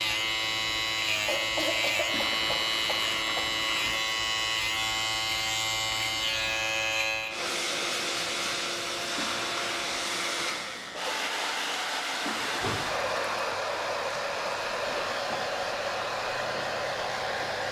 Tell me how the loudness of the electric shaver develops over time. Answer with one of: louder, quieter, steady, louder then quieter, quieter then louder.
quieter.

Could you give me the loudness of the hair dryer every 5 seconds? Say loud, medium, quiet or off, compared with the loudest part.
medium, loud, loud, loud.